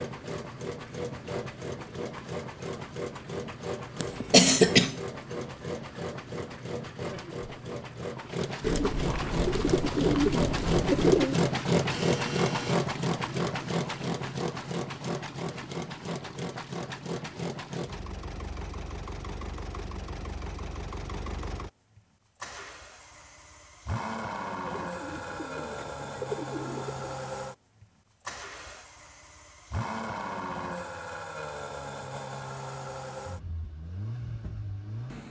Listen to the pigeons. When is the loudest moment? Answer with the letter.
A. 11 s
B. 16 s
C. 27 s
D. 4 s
A.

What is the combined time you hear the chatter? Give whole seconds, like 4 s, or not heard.
not heard.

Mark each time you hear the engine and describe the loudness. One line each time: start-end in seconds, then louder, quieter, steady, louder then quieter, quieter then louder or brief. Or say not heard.
0.0-35.2 louder then quieter.